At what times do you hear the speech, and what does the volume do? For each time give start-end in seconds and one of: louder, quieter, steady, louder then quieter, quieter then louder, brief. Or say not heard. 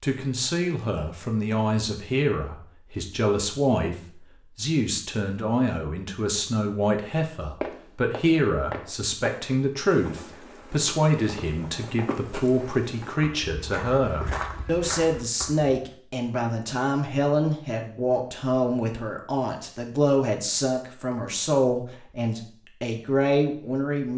0.0-24.1 steady.